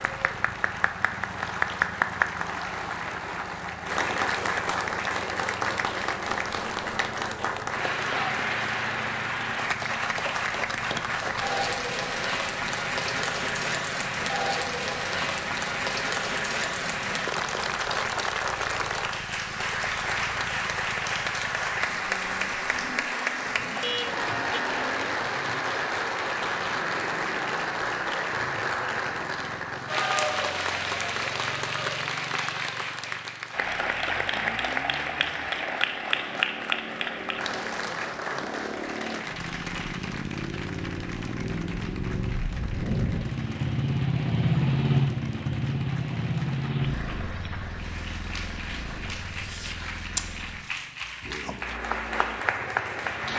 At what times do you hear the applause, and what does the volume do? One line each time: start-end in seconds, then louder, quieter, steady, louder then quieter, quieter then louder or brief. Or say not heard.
0.0-53.3 quieter.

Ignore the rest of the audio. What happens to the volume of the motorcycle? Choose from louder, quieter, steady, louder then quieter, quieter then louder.
louder.